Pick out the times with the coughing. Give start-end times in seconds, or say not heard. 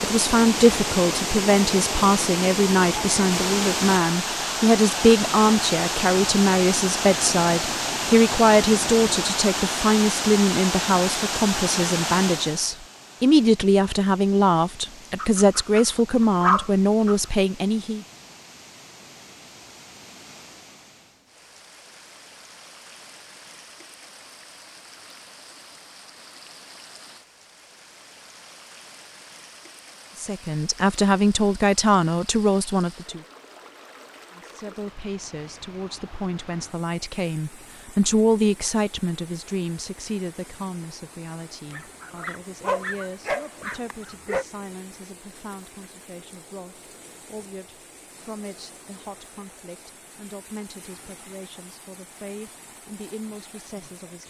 not heard.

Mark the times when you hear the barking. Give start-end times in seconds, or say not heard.
15.2-17.1, 41.7-44.5.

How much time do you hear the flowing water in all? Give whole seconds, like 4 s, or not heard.
54 s.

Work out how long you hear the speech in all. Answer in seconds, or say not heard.
41 s.